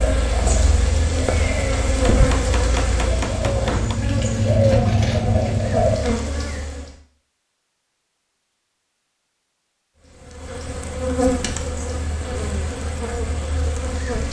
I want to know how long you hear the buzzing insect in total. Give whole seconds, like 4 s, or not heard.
11 s.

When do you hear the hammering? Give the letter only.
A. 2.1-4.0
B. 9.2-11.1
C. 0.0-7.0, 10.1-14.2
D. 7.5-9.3
A.